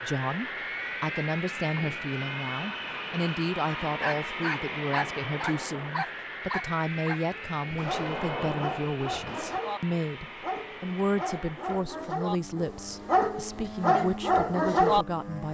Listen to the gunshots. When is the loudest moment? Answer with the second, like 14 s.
8 s.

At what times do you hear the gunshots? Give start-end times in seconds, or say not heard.
7.7-9.6.